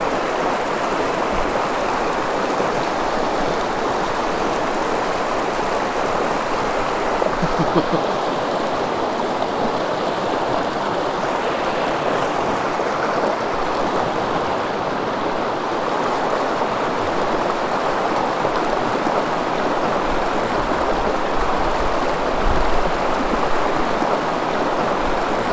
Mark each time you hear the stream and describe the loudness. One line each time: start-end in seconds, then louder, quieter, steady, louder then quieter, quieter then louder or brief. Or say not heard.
0.0-25.4 steady.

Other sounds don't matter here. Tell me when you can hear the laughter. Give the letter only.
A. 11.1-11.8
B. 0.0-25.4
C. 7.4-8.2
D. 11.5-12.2
C.